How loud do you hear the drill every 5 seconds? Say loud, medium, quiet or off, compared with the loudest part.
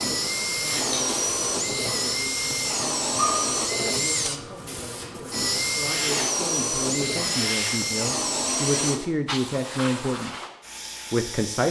loud, loud, off.